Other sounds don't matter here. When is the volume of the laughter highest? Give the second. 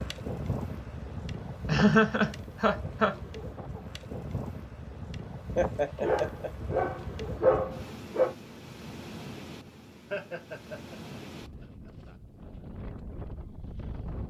2 s.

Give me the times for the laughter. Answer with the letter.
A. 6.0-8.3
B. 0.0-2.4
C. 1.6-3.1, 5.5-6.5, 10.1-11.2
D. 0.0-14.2
C.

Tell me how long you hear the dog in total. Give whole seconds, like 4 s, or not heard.
2 s.